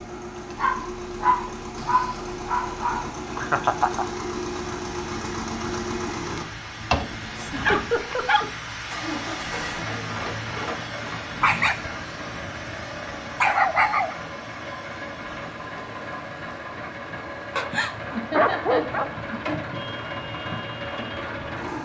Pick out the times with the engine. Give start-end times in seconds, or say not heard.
0.0-21.8.